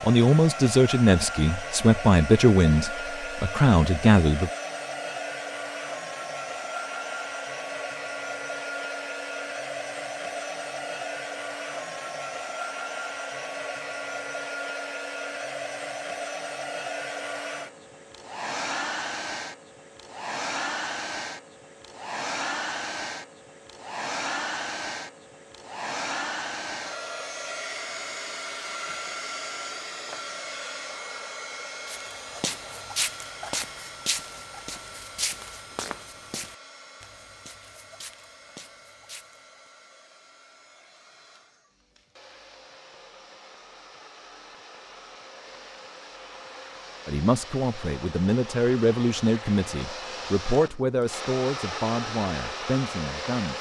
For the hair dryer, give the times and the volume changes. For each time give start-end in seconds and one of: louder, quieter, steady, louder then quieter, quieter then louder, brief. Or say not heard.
0.0-53.5 quieter then louder.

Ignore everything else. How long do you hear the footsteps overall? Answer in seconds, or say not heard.
8 s.